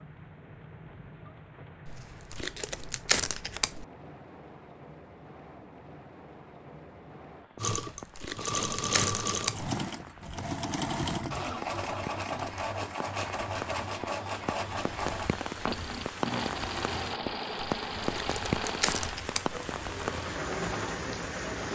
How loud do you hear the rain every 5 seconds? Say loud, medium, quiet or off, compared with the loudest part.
quiet, quiet, medium, loud, loud.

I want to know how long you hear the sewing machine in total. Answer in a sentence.
You can hear the sewing machine for 14 seconds altogether.